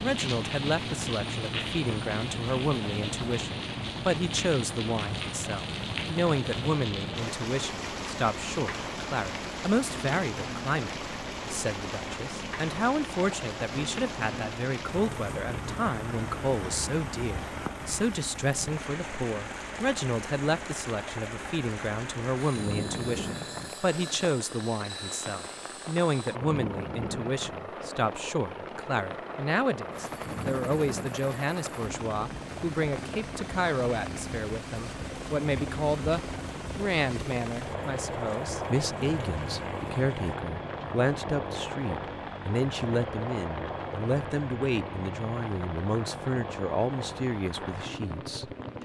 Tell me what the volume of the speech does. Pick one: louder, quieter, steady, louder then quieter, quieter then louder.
steady.